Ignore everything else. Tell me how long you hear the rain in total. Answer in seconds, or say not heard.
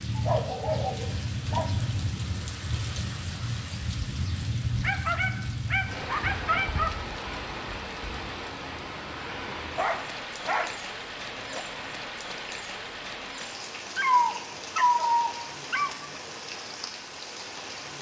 18 s.